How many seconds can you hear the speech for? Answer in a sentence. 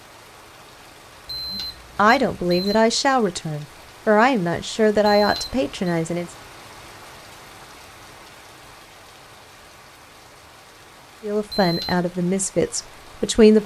The speech can be heard for 7 seconds in total.